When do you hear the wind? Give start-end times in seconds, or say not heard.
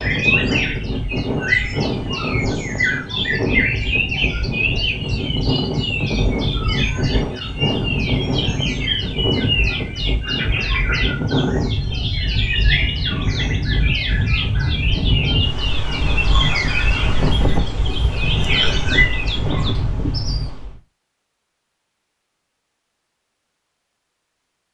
0.0-20.8.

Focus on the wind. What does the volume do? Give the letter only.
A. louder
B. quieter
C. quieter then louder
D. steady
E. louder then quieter
D.